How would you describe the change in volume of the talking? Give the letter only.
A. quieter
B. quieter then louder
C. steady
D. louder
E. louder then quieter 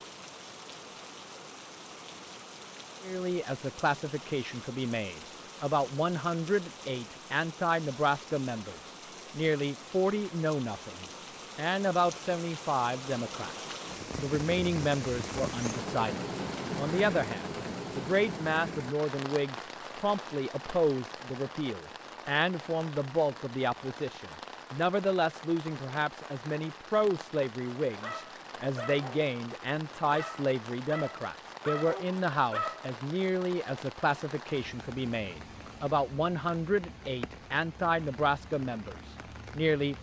C.